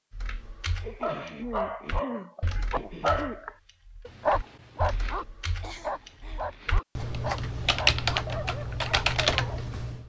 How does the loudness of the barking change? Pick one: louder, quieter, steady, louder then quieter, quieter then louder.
louder then quieter.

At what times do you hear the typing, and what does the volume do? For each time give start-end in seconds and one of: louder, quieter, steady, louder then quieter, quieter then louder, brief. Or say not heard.
0.1-10.0 louder.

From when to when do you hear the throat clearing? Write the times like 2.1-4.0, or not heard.
0.8-3.5, 5.6-7.2.